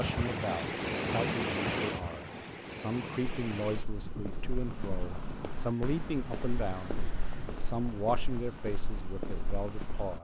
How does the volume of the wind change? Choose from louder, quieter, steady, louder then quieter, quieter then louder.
quieter.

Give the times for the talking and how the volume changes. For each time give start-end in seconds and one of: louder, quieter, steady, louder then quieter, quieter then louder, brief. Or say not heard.
0.0-10.1 steady.